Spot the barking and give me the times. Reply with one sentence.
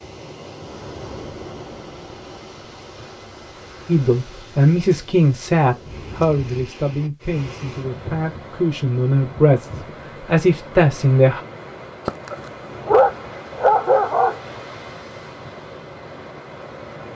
The barking can be heard from 12.1 to 14.4 s.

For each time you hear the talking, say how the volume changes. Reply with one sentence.
The talking can be heard from 3.9 to 11.4 s, getting quieter then louder.